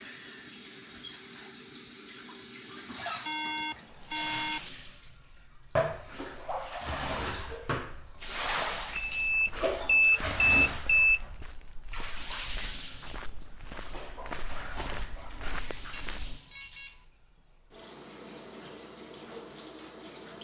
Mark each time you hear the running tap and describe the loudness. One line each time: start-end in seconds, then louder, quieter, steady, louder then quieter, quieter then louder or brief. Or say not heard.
0.0-20.3 louder then quieter.